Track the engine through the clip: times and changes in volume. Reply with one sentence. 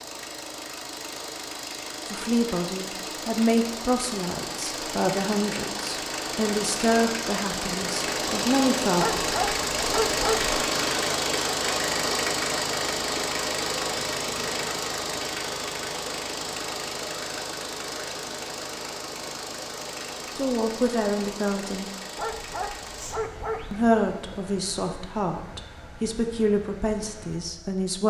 The engine can be heard from 0.0 to 28.0 s, getting louder then quieter.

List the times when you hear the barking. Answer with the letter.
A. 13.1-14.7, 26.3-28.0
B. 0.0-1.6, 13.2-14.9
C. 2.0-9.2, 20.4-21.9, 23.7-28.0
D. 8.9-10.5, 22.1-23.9
D.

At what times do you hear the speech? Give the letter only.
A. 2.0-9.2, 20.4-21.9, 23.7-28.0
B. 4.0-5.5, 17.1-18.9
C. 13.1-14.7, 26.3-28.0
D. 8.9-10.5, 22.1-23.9
A.